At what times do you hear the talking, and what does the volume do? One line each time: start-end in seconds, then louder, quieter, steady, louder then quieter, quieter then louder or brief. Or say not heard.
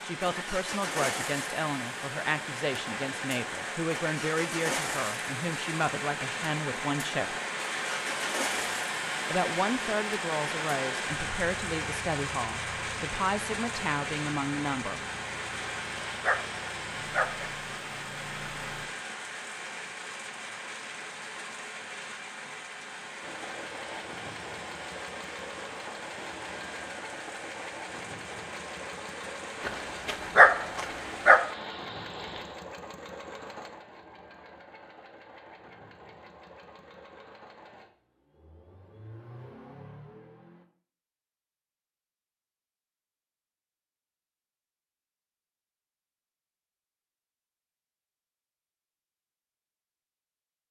0.0-7.3 steady
9.3-15.0 steady.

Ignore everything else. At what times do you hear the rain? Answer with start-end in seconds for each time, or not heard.
0.0-32.6.